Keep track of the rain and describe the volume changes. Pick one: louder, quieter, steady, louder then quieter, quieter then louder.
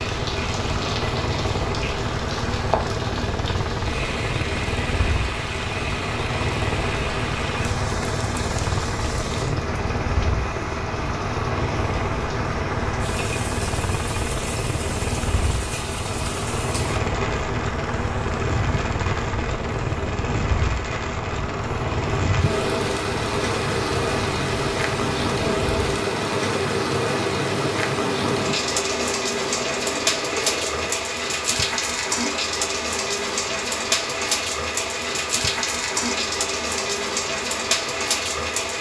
louder.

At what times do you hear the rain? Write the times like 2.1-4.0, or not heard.
0.0-38.7.